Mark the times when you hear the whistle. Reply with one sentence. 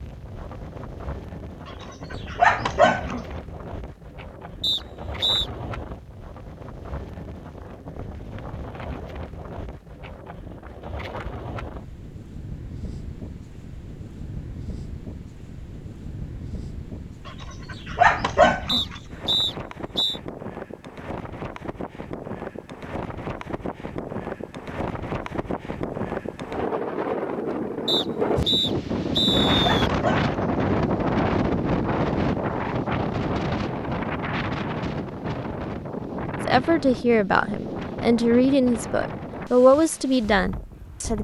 You can hear the whistle from 4.6 to 5.5 s, from 18.6 to 20.2 s and from 27.9 to 29.9 s.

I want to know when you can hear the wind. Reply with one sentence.
You can hear the wind from 0.0 to 41.1 s.